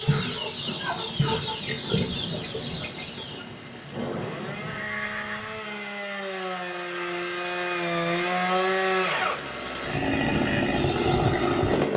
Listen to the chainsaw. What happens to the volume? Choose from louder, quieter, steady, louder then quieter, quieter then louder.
louder.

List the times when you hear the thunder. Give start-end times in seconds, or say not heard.
0.5-4.8.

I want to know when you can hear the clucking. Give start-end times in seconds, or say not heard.
0.0-3.5.